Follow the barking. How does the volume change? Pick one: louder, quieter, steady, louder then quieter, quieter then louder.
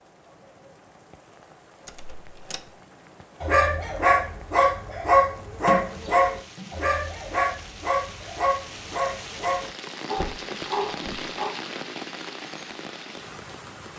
quieter.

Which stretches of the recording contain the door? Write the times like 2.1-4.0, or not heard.
1.9-2.7, 5.7-6.8, 10.2-11.3.